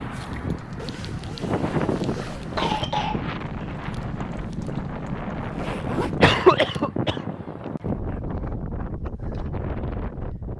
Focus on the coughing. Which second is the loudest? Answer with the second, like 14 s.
6 s.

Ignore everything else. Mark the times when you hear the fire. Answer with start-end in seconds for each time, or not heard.
0.0-6.3.